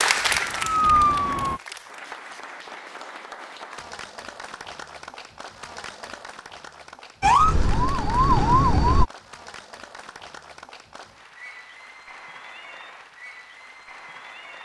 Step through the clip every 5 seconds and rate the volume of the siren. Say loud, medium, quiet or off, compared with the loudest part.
loud, loud, off.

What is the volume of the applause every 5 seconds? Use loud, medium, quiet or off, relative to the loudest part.
loud, medium, quiet.